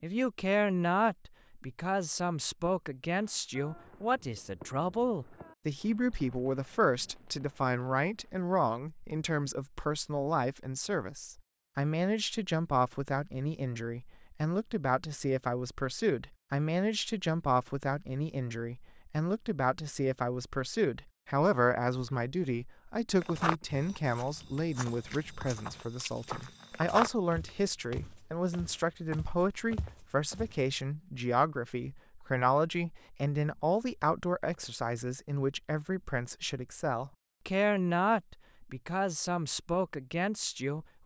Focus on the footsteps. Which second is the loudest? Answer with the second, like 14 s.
27 s.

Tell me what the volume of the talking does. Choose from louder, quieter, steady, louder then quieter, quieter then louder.
steady.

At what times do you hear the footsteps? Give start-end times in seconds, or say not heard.
23.2-30.6.